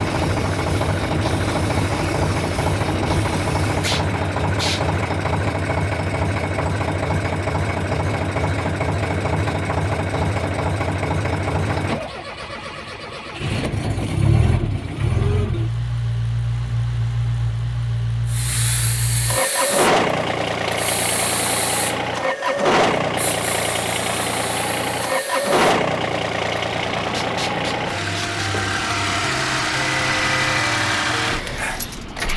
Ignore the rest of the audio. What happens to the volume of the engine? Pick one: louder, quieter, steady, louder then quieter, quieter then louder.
steady.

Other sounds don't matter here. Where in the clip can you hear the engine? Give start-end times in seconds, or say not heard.
0.0-32.3.